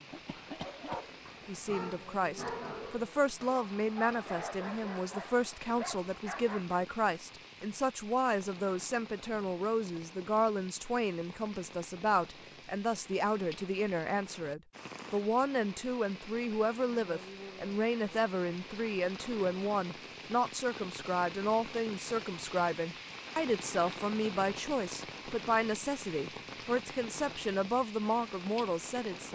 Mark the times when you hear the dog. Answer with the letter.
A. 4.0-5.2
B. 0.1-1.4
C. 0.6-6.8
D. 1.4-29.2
C.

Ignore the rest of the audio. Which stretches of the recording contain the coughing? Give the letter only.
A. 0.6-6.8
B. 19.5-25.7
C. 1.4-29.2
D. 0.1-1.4
D.